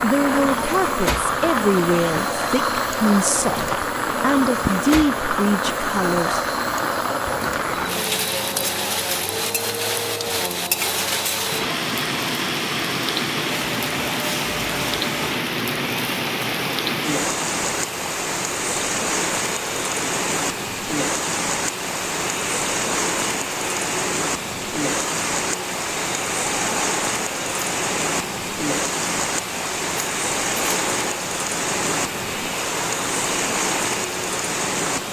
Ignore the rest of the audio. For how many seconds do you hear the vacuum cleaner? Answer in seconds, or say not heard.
35 s.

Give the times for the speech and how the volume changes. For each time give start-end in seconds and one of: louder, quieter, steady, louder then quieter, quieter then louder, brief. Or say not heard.
0.0-6.4 steady.